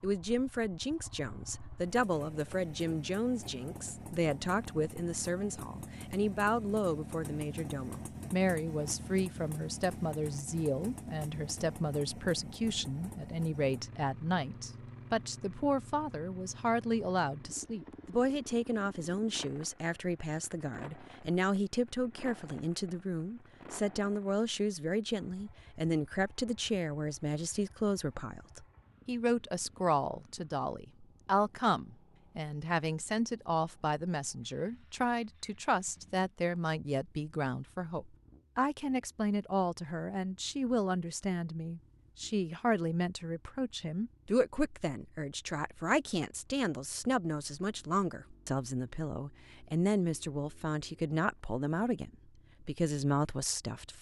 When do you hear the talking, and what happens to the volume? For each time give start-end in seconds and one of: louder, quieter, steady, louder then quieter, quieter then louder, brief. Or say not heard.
0.0-53.9 steady.